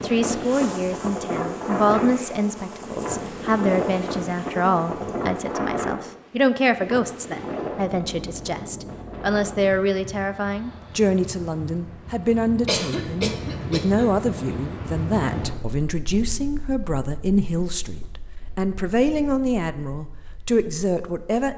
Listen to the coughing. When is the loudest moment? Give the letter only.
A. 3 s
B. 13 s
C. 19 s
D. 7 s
B.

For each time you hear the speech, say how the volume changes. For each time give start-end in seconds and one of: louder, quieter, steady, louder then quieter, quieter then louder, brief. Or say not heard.
0.0-21.5 steady.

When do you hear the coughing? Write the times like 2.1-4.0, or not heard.
12.7-14.2.